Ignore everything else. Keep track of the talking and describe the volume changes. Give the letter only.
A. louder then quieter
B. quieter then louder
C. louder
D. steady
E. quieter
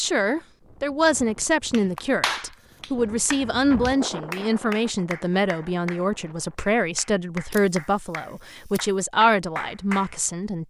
D.